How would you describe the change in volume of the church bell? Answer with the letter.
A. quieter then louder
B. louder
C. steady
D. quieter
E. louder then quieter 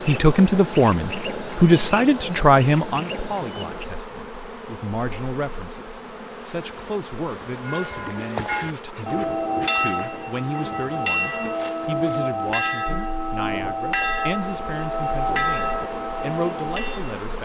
C.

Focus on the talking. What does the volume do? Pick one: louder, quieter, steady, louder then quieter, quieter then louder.
quieter.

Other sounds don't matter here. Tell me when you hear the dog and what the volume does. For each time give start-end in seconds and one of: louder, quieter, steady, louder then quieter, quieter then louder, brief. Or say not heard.
not heard.